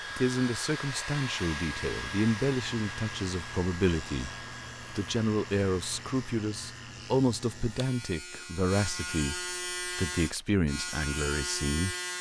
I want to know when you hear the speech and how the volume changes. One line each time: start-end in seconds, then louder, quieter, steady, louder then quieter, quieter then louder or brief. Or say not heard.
0.1-11.9 steady.